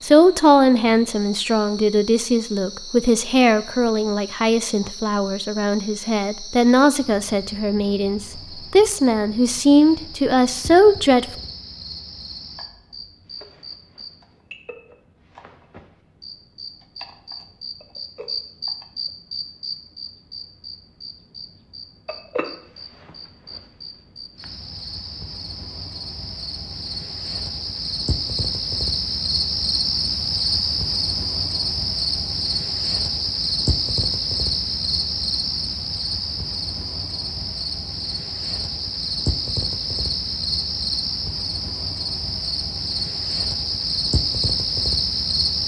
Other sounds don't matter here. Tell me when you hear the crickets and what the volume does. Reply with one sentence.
You can hear the crickets from 0.0 to 45.6 s, getting louder.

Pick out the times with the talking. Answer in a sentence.
You can hear the talking from 0.0 to 11.2 s.